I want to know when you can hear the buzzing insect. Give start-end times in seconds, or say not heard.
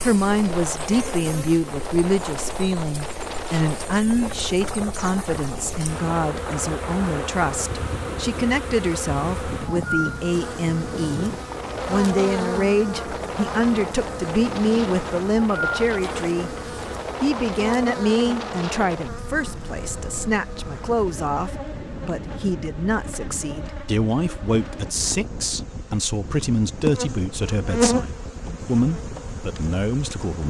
0.0-30.4.